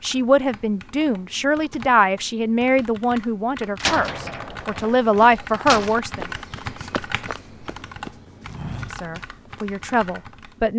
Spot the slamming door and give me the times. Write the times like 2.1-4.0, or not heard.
3.8-6.0.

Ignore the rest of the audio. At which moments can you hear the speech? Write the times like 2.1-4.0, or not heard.
0.0-6.3, 8.9-10.7.